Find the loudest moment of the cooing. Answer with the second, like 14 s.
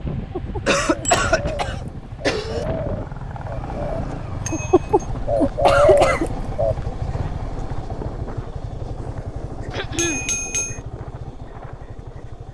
6 s.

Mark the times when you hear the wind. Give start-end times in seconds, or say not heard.
0.0-12.4.